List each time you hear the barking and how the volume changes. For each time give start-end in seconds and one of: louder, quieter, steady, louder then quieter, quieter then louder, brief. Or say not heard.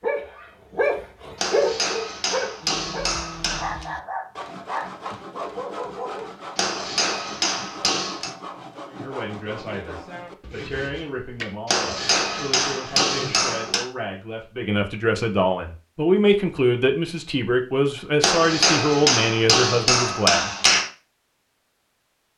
0.0-6.3 quieter.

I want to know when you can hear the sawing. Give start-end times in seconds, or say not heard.
2.6-13.6.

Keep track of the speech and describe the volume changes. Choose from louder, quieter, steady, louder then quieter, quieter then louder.
louder.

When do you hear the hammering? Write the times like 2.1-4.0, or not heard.
1.4-3.9, 6.5-8.3, 11.7-13.8, 18.2-20.9.